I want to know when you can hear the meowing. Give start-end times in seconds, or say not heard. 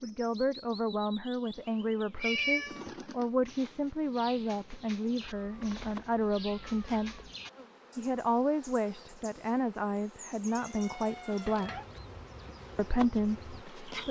2.1-2.9, 5.2-7.3, 10.4-11.8.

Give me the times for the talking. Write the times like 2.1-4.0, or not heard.
0.0-7.2, 8.0-11.8, 12.8-14.0.